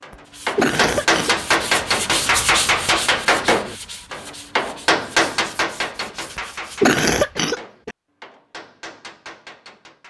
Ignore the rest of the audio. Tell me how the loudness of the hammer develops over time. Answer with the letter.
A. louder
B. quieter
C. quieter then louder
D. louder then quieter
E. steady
B.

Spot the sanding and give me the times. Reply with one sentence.
The sanding can be heard from 0.2 to 7.0 s.